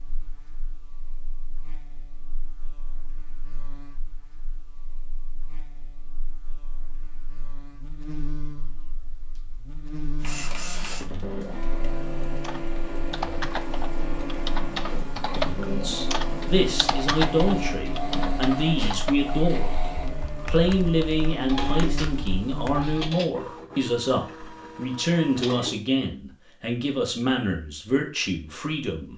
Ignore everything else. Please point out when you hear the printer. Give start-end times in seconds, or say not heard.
10.2-25.8.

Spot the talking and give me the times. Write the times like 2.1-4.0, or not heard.
15.7-19.7, 20.4-29.1.